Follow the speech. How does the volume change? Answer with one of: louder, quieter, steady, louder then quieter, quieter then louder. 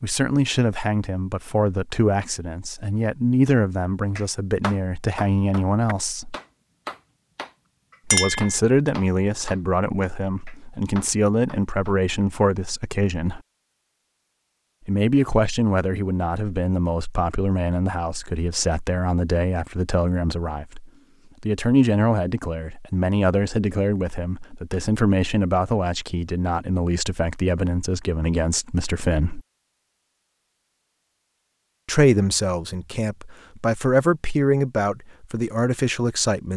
steady.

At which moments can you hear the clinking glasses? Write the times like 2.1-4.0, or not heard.
8.1-8.6.